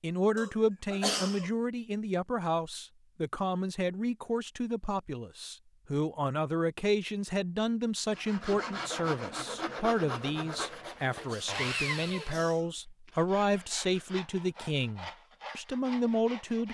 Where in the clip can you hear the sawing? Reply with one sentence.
You can hear the sawing from 8.1 to 16.6 s.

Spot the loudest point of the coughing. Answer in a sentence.
The loudest moment of the coughing is at 1 second.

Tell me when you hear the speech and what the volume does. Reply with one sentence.
You can hear the speech from 0.0 to 16.6 s, at a steady volume.